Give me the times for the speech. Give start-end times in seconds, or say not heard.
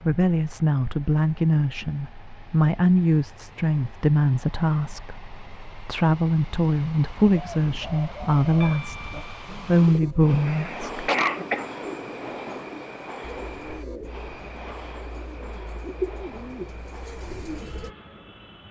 0.0-11.1.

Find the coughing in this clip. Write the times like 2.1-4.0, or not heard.
10.4-11.7.